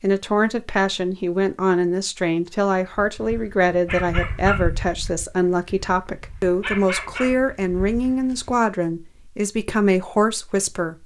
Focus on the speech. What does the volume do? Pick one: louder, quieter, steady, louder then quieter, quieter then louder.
steady.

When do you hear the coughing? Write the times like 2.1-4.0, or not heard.
not heard.